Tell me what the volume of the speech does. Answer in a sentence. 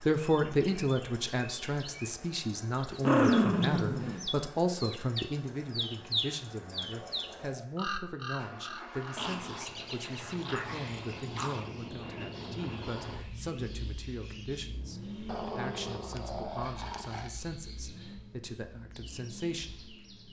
The volume of the speech goes down.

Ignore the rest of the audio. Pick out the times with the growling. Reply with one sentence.
The growling can be heard from 2.9 to 4.2 s, from 9.2 to 11.7 s and from 15.2 to 17.3 s.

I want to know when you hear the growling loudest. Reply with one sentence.
The volume of the growling peaks at 3 seconds.